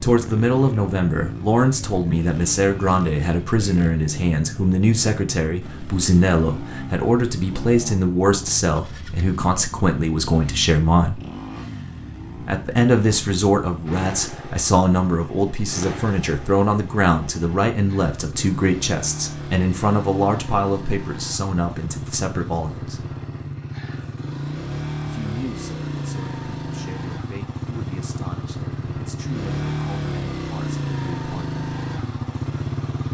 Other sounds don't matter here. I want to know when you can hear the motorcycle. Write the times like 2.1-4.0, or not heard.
0.0-33.0.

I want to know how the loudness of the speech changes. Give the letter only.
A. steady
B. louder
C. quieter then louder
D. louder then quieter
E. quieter
E.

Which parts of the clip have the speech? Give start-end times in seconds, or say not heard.
0.0-11.2, 12.4-23.1, 25.1-31.6.